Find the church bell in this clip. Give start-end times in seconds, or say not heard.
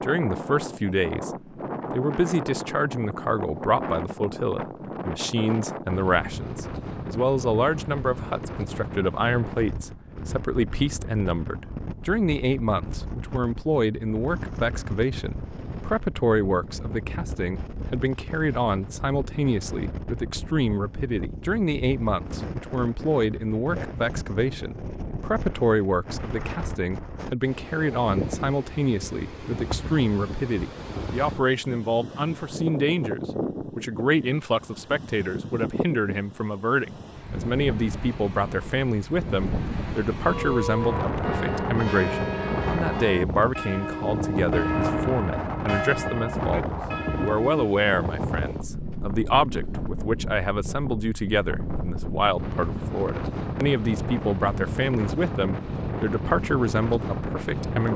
40.2-47.8.